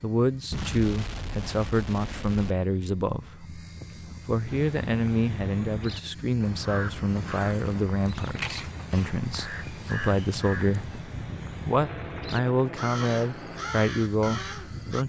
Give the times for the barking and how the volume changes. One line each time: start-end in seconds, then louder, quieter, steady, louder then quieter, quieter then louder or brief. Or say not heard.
not heard.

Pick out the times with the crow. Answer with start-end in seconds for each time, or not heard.
4.5-15.0.